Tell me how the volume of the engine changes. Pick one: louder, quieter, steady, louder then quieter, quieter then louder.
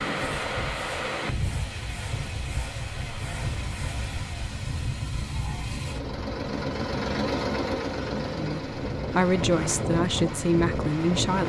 louder then quieter.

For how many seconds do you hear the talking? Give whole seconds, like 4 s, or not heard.
3 s.